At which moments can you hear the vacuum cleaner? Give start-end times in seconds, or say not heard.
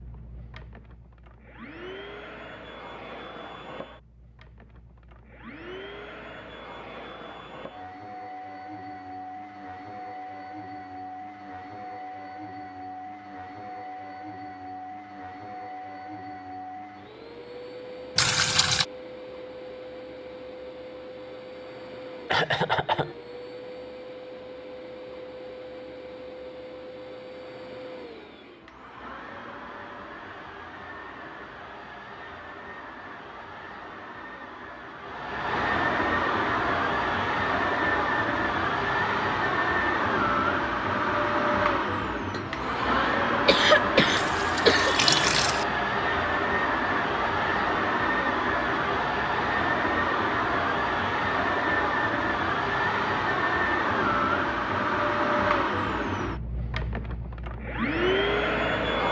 0.0-59.0.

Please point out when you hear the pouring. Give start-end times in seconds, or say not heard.
18.1-18.9, 44.1-45.6.